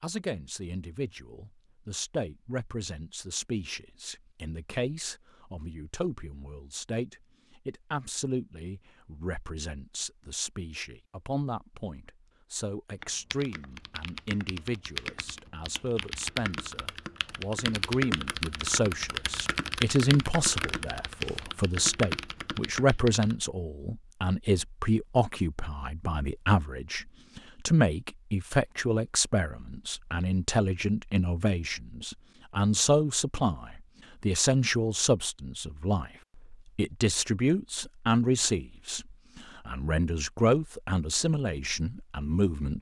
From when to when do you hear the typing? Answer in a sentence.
You can hear the typing from 13.0 to 23.4 s.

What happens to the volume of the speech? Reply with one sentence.
The loudness of the speech goes up.